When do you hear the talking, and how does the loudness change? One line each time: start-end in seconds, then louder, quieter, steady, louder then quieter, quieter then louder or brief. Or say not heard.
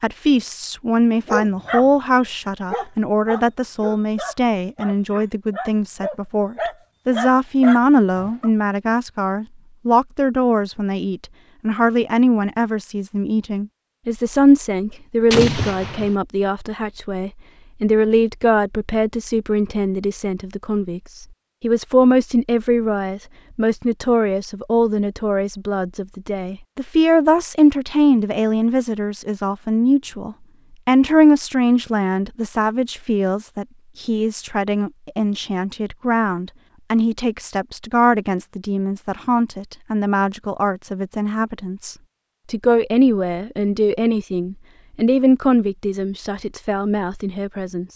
0.0-47.9 steady.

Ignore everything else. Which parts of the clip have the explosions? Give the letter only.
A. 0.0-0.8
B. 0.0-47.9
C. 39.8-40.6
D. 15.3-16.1
D.